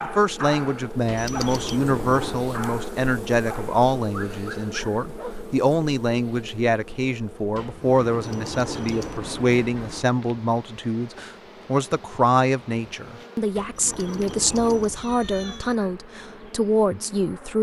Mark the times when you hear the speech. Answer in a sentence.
The speech can be heard from 0.0 to 17.5 s.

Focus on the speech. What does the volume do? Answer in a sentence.
The volume of the speech stays about the same.